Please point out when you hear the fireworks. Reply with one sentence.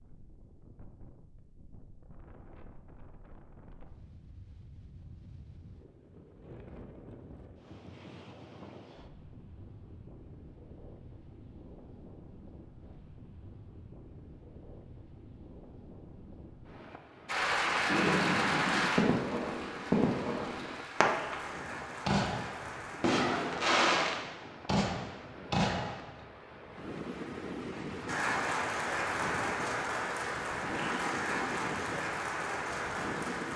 The fireworks can be heard from 17.9 to 26.2 s.